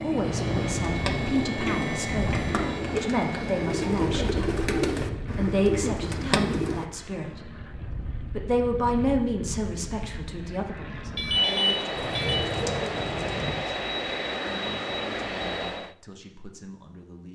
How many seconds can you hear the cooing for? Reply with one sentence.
The cooing can be heard for 8 seconds in total.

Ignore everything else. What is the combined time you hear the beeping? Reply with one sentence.
The beeping can be heard for 2 seconds in total.